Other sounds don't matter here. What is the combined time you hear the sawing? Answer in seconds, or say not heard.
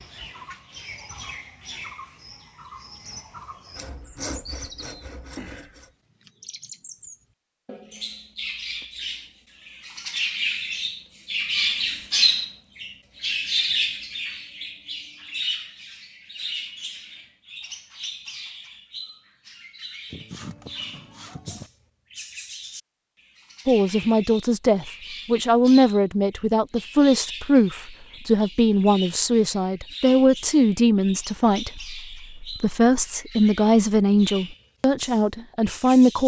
4 s.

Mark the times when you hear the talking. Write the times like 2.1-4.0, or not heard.
23.6-36.2.